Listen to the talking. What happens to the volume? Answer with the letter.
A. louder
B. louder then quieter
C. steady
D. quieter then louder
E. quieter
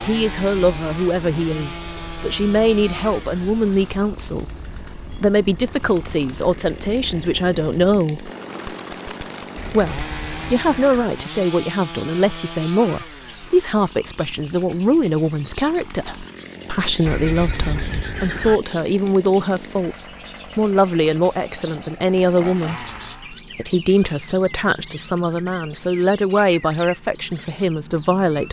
C.